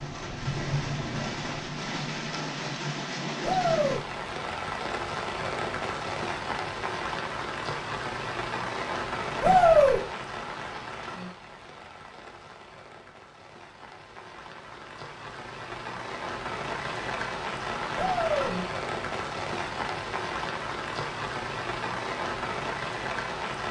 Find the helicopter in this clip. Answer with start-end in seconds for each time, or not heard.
not heard.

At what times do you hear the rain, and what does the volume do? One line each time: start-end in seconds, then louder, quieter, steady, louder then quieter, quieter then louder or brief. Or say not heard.
0.0-23.6 quieter then louder.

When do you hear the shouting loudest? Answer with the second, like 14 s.
10 s.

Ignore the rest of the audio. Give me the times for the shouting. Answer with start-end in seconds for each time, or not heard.
3.4-4.0, 9.4-10.0, 17.9-18.6.